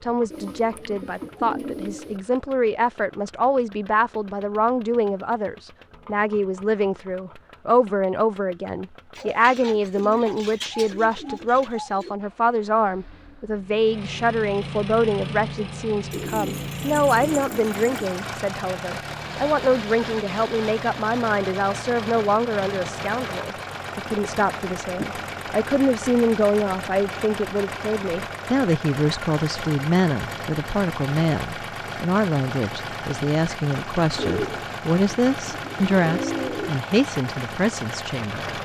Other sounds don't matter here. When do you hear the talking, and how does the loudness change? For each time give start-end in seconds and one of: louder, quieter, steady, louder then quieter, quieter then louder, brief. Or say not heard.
0.0-38.6 steady.